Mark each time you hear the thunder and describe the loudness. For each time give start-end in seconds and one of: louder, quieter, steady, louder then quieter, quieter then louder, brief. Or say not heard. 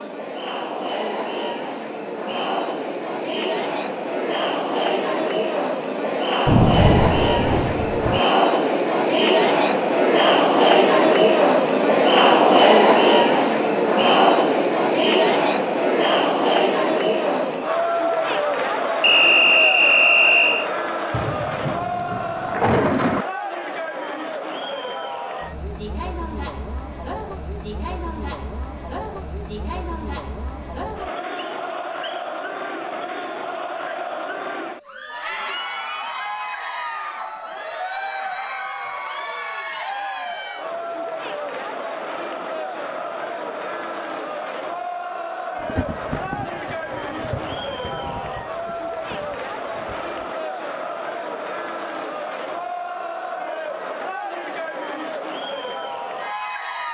6.5-8.2 brief
21.1-23.2 brief
45.6-50.2 quieter.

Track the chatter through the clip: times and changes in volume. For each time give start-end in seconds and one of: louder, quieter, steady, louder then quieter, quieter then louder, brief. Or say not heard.
0.0-56.9 quieter.